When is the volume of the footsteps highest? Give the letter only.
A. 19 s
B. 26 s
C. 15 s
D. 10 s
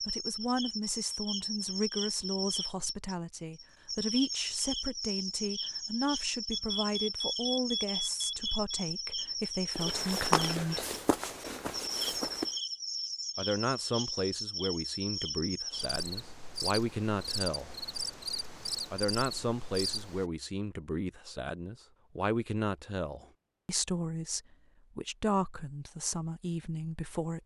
D.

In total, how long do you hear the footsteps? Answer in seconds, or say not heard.
3 s.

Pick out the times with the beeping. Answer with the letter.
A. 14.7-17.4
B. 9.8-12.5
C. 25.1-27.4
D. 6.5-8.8
D.